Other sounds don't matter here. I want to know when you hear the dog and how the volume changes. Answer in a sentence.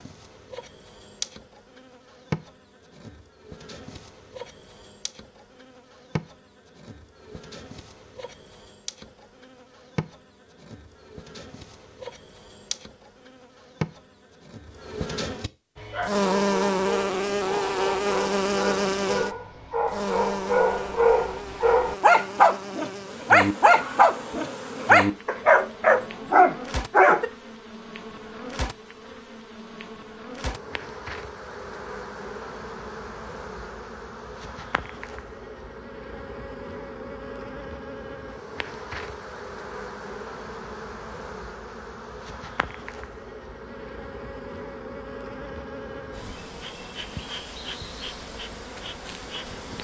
You can hear the dog from 15.8 to 27.2 s, getting louder.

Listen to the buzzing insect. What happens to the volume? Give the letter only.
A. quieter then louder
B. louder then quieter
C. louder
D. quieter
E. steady
B.